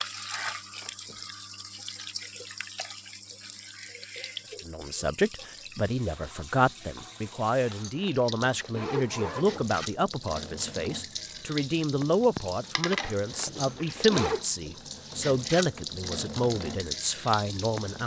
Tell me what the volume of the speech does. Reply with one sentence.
The loudness of the speech stays about the same.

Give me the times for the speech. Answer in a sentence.
The speech can be heard from 4.6 to 18.0 s.